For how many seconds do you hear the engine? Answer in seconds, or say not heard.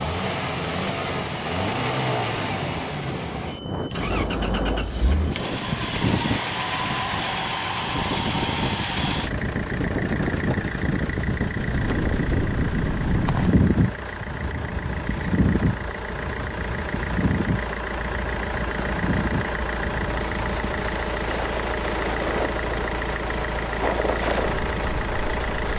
26 s.